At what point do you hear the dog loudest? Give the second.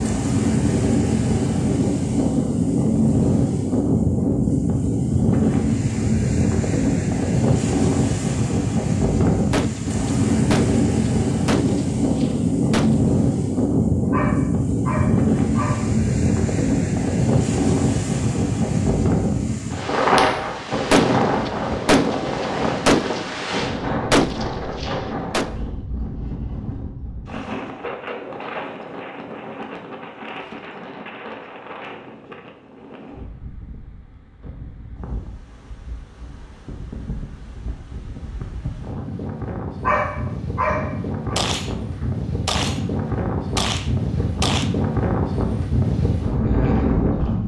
40 s.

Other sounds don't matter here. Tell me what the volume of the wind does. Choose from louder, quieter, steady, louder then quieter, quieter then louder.
quieter then louder.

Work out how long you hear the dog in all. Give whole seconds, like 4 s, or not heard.
3 s.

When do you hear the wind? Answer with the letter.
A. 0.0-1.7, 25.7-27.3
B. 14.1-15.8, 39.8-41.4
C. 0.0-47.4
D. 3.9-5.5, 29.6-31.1
C.